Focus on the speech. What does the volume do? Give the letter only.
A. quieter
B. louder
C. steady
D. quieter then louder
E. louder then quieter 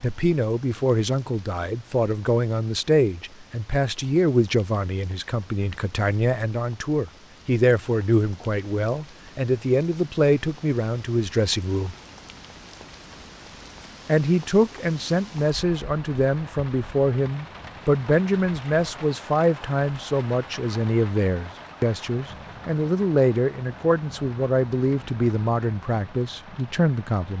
C.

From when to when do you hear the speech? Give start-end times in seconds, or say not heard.
0.0-11.9, 14.1-27.3.